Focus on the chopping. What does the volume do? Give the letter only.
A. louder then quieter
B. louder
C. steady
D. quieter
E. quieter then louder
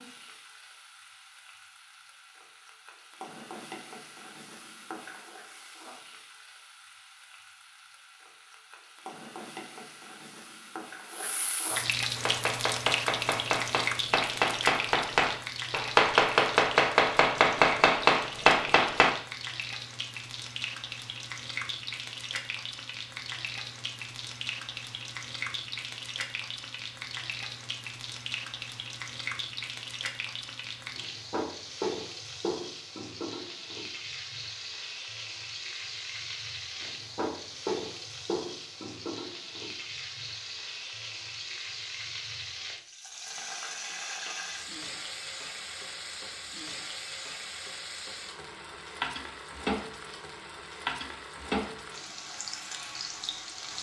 B.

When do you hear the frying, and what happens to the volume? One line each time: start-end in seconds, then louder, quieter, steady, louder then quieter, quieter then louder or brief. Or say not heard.
0.0-53.7 louder.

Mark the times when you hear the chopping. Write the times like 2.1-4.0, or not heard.
12.2-19.1.